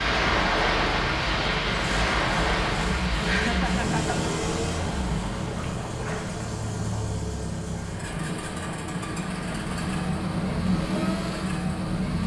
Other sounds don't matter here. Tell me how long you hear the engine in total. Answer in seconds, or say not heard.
12 s.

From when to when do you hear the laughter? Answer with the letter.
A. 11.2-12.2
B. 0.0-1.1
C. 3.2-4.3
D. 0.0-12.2
C.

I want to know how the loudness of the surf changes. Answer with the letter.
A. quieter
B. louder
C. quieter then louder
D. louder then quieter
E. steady
A.